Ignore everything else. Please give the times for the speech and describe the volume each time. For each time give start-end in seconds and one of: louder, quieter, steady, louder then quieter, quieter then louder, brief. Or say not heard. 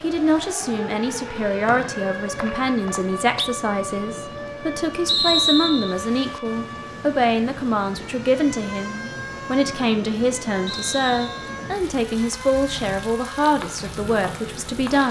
0.0-15.0 steady.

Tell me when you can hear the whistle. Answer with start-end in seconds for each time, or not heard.
1.6-3.5, 5.0-6.0, 10.7-11.5.